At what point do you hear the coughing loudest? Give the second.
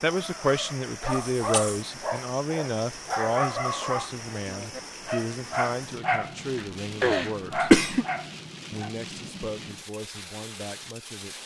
8 s.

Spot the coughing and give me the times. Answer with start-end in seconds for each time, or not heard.
1.3-1.9, 6.5-8.1.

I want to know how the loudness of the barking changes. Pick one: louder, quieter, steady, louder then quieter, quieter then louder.
steady.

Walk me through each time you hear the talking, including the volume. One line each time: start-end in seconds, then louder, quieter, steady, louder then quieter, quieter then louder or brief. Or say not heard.
0.0-7.7 quieter
8.7-11.4 brief.